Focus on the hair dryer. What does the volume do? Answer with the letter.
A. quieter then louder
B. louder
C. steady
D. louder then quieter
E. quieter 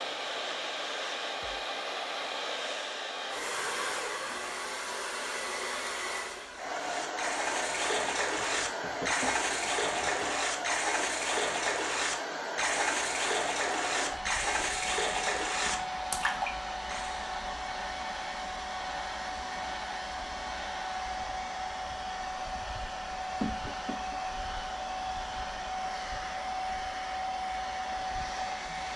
C.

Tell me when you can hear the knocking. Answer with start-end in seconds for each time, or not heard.
8.3-10.2, 23.4-24.2.